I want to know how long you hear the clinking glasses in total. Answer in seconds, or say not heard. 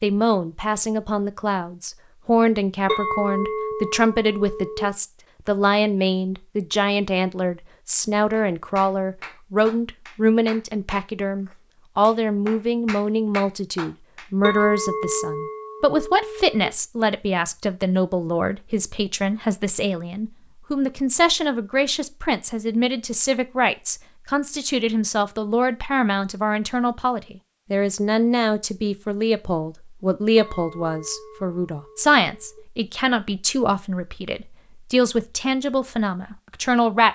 6 s.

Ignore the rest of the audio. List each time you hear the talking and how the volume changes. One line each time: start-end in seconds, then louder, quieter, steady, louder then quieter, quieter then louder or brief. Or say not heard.
0.0-37.1 steady.